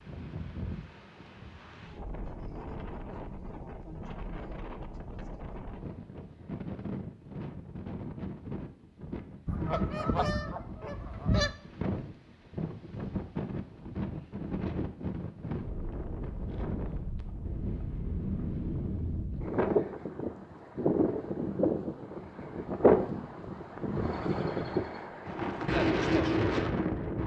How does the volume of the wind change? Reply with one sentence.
The loudness of the wind goes up.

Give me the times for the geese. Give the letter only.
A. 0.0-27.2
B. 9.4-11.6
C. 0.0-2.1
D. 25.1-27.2
B.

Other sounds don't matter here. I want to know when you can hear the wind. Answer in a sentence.
The wind can be heard from 0.0 to 27.2 s.